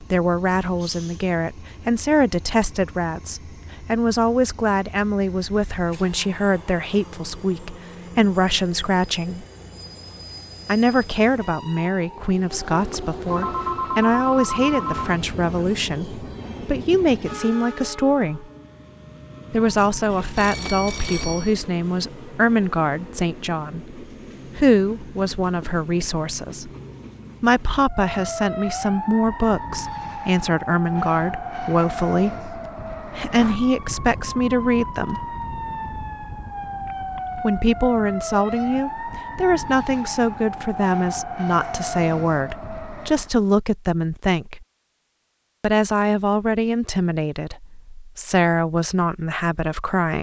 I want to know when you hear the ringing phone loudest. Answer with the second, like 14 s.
14 s.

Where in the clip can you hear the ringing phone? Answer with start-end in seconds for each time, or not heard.
13.2-15.2, 20.1-21.6, 36.7-37.5.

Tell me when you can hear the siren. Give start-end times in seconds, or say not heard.
27.9-43.3.